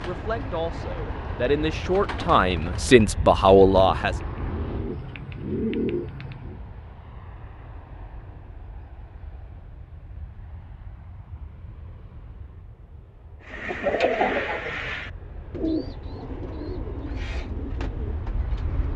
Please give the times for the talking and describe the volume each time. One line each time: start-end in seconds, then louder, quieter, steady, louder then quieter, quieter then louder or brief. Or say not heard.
0.0-4.2 louder.